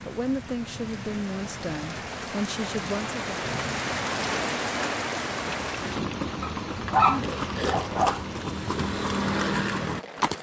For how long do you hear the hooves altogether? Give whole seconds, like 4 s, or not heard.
5 s.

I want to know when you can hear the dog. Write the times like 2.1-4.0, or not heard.
6.4-8.2.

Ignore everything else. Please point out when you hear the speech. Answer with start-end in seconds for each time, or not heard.
0.0-3.5.